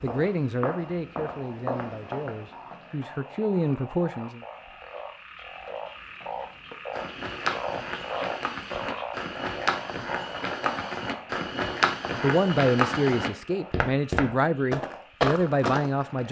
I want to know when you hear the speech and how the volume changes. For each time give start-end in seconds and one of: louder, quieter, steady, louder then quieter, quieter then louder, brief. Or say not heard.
0.0-4.4 quieter then louder
12.2-16.2 quieter then louder.